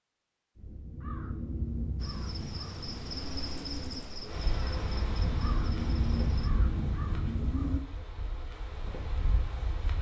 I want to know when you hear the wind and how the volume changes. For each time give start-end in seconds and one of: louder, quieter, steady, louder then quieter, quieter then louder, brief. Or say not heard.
4.2-9.9 quieter then louder.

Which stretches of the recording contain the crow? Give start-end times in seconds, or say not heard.
0.6-7.8.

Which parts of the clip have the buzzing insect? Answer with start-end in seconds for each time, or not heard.
1.9-6.5.